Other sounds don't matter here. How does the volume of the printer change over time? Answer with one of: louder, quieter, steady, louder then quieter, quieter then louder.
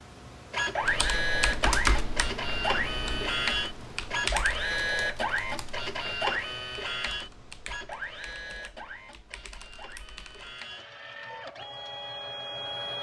quieter.